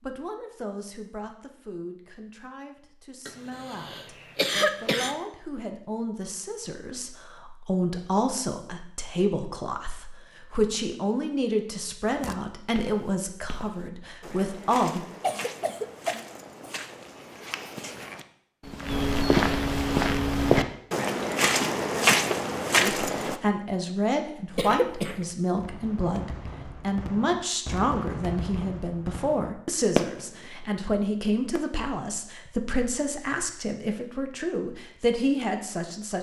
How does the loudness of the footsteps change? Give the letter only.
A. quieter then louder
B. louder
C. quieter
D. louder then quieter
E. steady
B.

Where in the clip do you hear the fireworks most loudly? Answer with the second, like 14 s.
30 s.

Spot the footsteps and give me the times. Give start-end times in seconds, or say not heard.
12.1-23.4.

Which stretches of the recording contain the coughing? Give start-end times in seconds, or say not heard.
3.2-5.2, 15.2-16.8, 24.6-25.2.